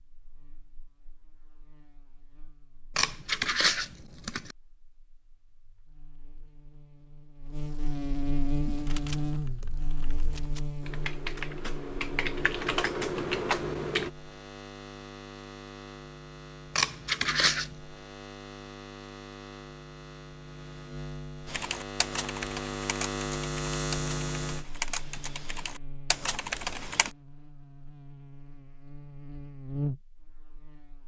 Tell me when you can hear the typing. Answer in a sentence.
You can hear the typing from 8.6 to 14.1 s and from 21.4 to 27.1 s.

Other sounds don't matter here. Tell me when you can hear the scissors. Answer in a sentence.
You can hear the scissors from 3.0 to 4.5 s and from 16.8 to 17.7 s.